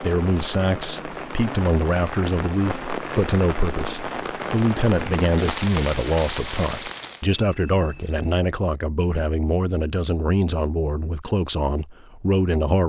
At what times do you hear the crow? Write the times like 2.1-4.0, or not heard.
not heard.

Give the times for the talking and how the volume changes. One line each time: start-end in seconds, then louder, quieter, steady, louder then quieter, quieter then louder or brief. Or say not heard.
0.0-12.8 steady.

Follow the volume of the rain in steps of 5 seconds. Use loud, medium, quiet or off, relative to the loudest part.
loud, loud, off.